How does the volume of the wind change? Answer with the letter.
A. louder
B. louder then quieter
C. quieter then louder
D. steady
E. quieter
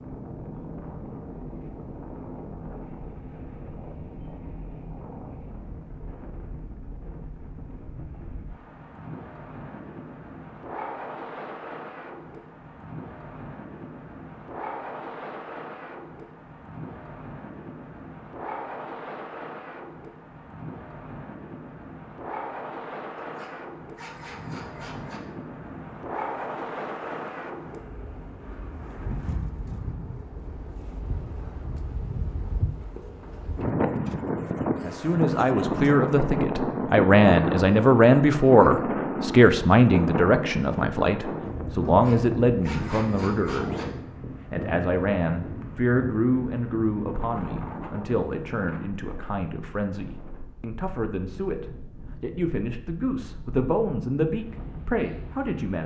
B.